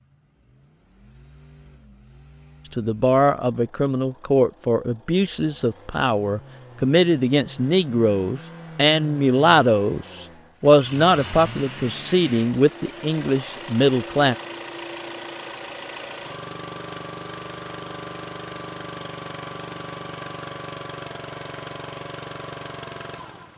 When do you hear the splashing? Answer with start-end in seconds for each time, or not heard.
not heard.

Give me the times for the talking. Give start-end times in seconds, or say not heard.
2.7-14.3.